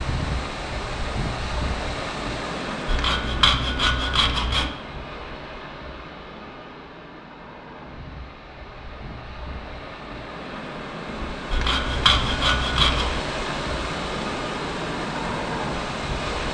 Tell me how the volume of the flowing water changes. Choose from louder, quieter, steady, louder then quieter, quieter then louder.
quieter then louder.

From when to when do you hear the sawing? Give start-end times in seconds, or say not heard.
2.9-4.7, 11.5-13.2.